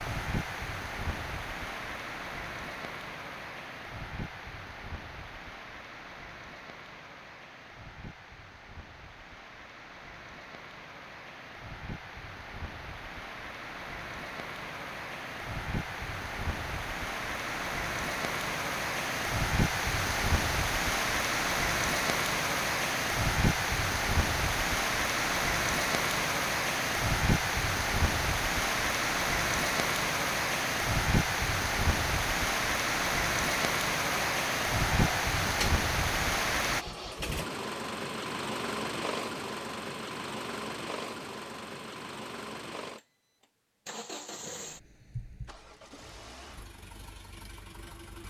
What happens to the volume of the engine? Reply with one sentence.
The volume of the engine goes down.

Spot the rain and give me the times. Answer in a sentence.
The rain can be heard from 0.0 to 36.9 s.